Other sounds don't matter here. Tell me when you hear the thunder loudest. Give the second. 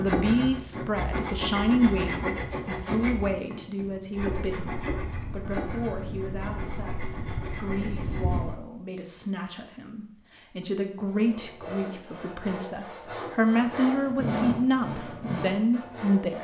8 s.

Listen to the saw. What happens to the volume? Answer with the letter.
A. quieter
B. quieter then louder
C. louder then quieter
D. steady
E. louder
B.